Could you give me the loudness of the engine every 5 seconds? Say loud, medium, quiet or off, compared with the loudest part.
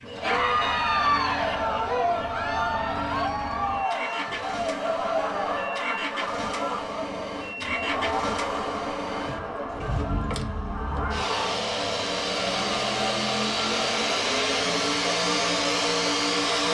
quiet, medium, loud, loud.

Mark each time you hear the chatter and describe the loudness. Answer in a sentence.
The chatter can be heard from 0.1 to 16.7 s, getting quieter.